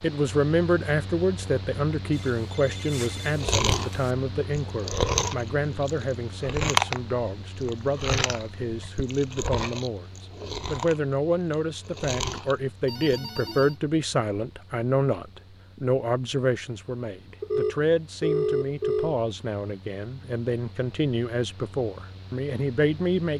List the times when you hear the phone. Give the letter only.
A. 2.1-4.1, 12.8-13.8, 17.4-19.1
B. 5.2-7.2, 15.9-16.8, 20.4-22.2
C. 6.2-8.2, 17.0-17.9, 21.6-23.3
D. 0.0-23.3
A.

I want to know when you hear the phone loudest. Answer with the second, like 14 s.
18 s.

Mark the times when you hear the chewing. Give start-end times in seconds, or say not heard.
3.4-13.2.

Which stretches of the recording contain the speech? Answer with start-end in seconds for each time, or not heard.
0.0-23.3.